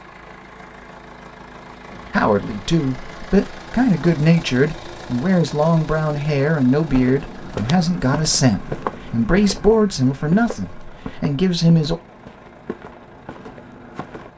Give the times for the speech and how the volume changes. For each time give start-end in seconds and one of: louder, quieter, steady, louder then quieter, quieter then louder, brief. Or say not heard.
2.1-11.9 steady.